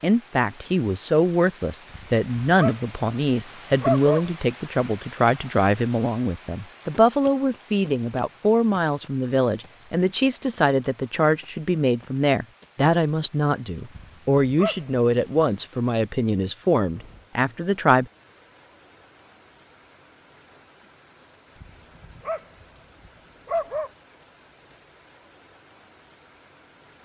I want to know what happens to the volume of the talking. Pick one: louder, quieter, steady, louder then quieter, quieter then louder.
steady.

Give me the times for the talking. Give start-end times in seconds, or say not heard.
0.0-18.1.